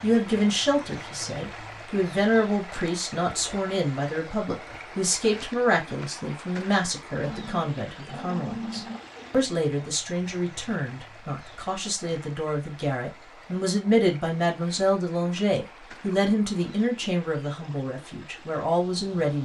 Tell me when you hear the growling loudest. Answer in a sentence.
The loudest moment of the growling is at 9 seconds.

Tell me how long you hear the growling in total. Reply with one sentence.
You can hear the growling for 2 seconds altogether.